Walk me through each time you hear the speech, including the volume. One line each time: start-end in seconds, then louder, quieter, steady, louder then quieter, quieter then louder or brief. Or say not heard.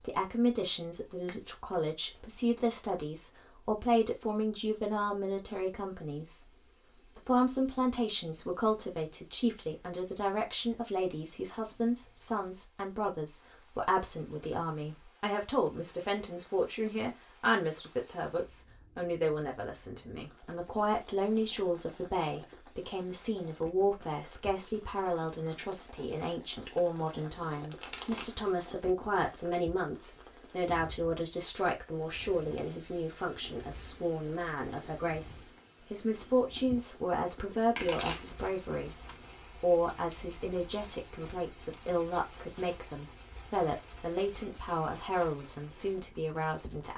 0.0-46.9 steady.